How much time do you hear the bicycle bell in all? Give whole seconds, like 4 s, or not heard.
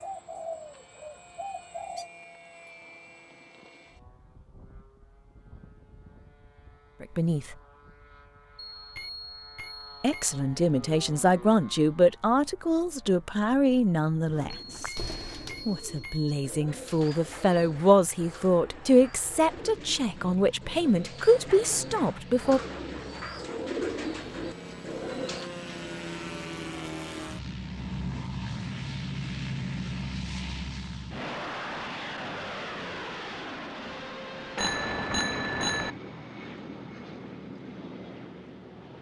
5 s.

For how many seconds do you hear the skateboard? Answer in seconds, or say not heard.
not heard.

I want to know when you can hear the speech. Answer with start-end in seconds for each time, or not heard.
7.0-7.5, 10.0-14.9, 15.7-22.6.